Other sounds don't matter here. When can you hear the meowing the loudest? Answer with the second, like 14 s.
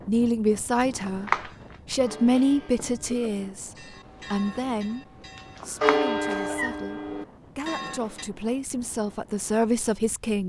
1 s.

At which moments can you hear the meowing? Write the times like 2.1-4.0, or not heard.
0.8-1.5, 5.3-6.8.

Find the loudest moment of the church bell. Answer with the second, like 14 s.
6 s.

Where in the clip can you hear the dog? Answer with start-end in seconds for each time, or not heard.
not heard.